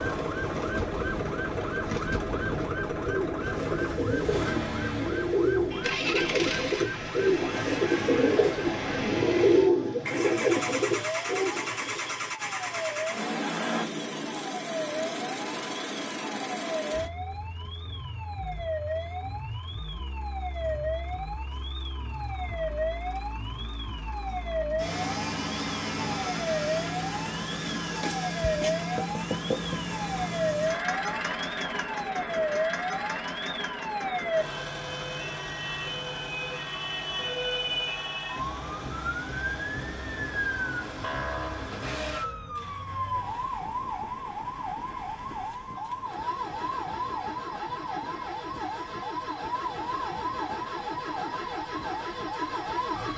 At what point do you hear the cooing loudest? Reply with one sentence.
The loudest moment of the cooing is at 10 seconds.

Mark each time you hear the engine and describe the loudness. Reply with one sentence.
You can hear the engine from 0.0 to 53.1 s, getting quieter.